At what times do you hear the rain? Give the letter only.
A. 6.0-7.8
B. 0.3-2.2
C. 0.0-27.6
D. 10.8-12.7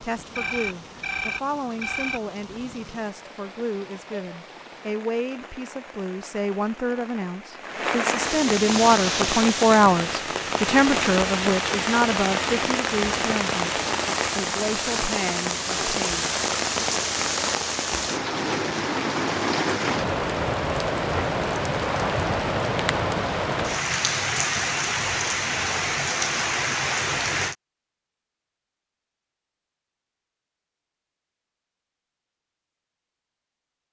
C.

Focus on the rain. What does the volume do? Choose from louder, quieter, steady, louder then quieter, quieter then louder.
louder.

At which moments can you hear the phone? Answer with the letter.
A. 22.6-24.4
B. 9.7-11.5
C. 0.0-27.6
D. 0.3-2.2
D.